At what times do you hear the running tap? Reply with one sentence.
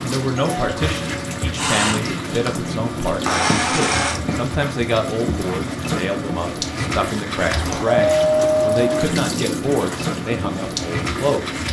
The running tap can be heard from 0.0 to 11.6 s.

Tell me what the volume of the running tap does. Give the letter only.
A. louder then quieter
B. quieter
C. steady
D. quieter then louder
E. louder
C.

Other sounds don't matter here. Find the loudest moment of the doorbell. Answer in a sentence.
The volume of the doorbell peaks at 8 seconds.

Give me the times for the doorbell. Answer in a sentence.
You can hear the doorbell from 0.3 to 1.4 s and from 7.5 to 9.1 s.